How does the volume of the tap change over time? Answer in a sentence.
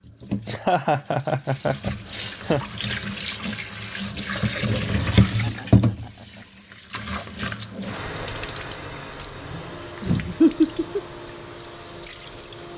The volume of the tap goes up, then down.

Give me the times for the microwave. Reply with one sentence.
The microwave can't be heard in this clip.